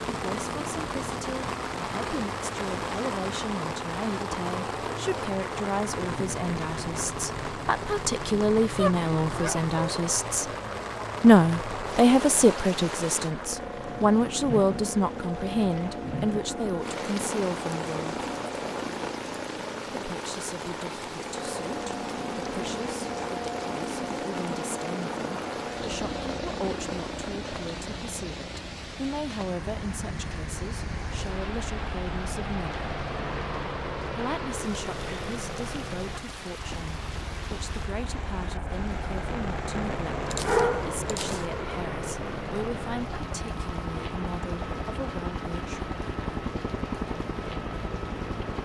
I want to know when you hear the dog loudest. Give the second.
41 s.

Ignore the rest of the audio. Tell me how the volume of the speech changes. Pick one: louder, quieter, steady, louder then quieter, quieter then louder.
louder then quieter.